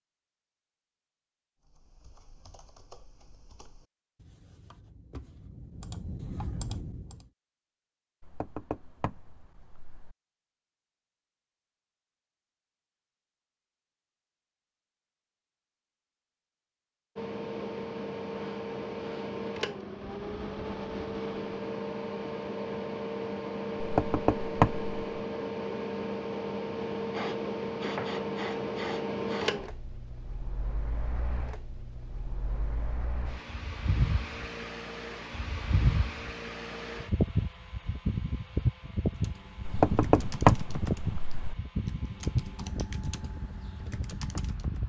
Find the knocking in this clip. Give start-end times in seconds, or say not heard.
8.2-10.2, 23.8-24.9, 39.6-41.5.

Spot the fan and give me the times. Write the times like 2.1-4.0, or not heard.
17.1-44.8.